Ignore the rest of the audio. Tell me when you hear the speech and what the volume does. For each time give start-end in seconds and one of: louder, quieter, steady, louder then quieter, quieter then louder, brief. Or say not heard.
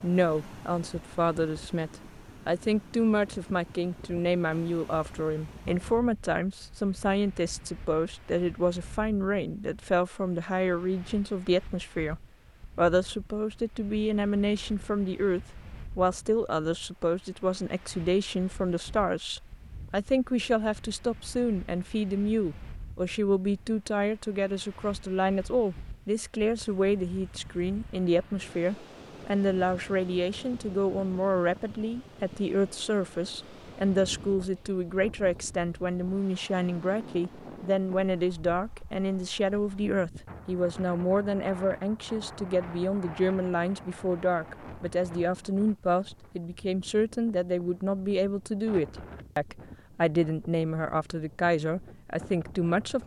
0.0-53.0 steady.